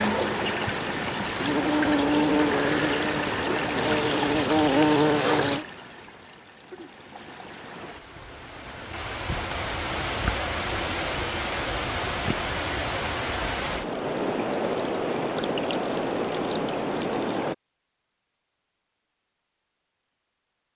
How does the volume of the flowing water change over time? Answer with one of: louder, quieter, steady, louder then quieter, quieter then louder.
quieter then louder.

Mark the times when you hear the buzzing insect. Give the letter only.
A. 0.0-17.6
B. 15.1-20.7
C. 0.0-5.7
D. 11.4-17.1
C.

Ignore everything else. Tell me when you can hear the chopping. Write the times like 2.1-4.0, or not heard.
not heard.